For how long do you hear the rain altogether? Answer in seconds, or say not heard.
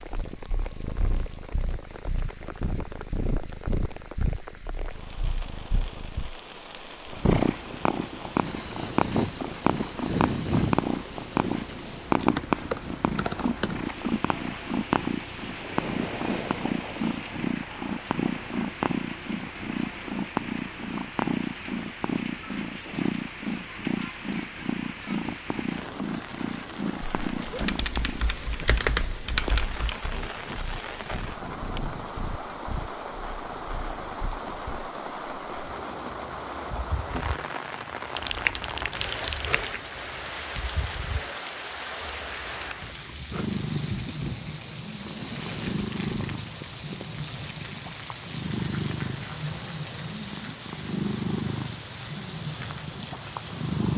54 s.